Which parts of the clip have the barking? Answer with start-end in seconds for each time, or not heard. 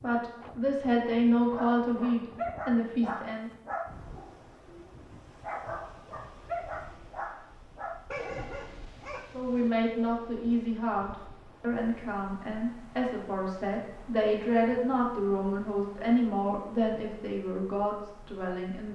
1.5-9.8.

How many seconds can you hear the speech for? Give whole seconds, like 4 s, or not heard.
13 s.